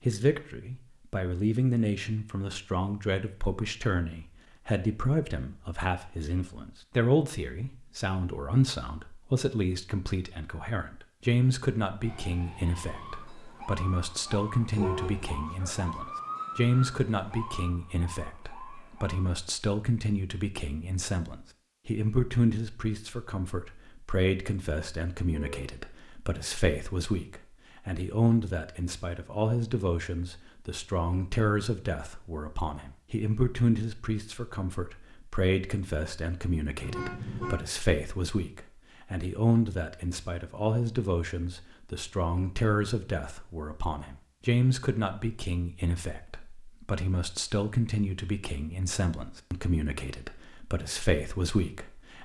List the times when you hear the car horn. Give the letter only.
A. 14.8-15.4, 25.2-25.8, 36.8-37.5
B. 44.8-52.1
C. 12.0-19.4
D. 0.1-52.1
A.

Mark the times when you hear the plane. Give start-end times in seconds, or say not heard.
not heard.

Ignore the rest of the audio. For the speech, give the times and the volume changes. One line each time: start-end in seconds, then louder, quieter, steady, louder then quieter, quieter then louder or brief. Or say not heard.
0.1-52.1 steady.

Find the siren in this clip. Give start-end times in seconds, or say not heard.
12.0-19.4.